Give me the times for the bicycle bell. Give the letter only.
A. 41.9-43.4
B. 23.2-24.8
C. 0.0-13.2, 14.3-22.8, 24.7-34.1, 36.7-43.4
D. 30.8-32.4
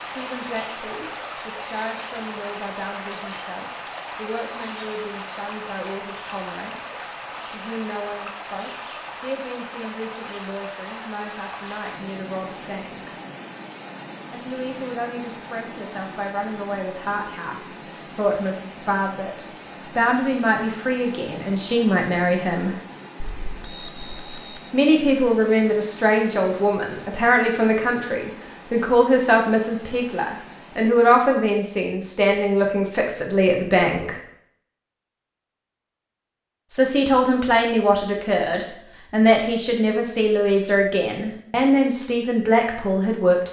B.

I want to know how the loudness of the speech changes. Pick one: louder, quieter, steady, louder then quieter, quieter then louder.
louder.